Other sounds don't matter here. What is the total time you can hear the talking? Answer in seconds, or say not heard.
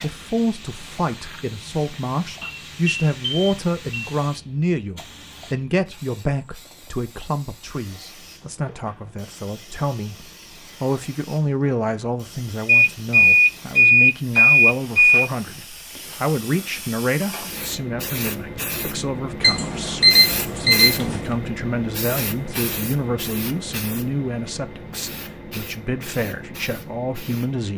28 s.